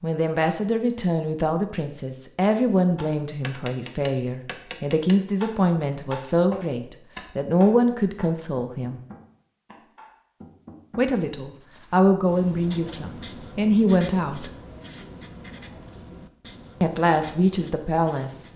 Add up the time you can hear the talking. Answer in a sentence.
The talking can be heard for 14 seconds in total.